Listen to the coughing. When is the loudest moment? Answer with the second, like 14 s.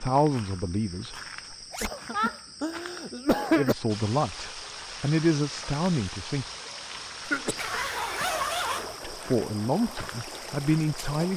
3 s.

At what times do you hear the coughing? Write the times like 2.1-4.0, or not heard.
1.8-3.8, 7.2-8.0.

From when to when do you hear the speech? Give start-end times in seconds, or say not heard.
0.0-1.6, 3.5-6.5, 9.1-11.3.